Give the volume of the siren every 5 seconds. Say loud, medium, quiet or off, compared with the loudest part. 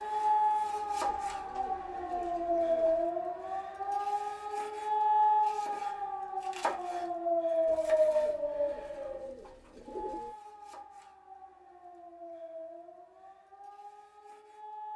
loud, loud, quiet.